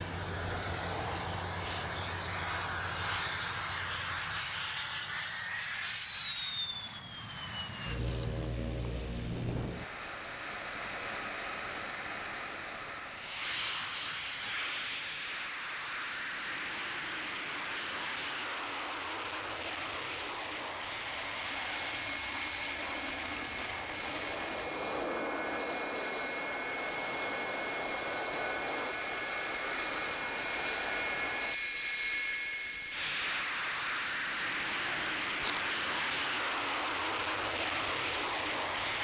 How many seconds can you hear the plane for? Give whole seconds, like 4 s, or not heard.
39 s.